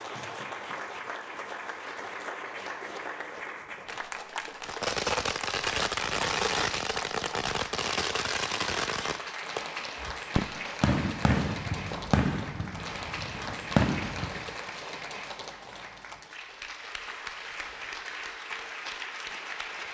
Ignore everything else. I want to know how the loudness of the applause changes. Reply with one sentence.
The volume of the applause stays about the same.